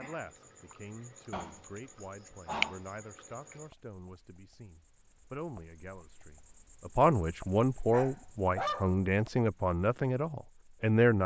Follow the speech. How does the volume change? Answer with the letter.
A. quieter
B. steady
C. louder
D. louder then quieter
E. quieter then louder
C.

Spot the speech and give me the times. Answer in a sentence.
The speech can be heard from 0.0 to 11.2 s.